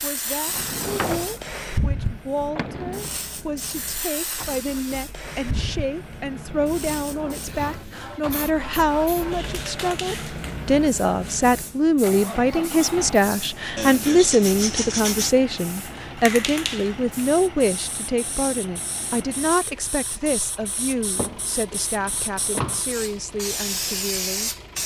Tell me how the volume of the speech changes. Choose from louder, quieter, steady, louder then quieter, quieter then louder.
louder then quieter.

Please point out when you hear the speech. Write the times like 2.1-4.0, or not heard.
0.0-24.6.